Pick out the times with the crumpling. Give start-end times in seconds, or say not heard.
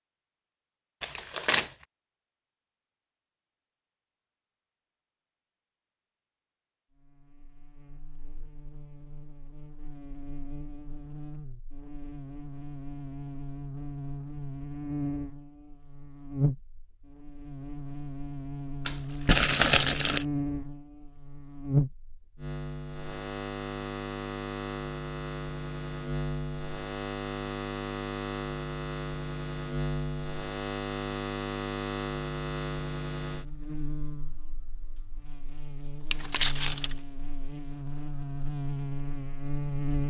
1.0-1.7, 18.9-20.2, 36.1-37.0.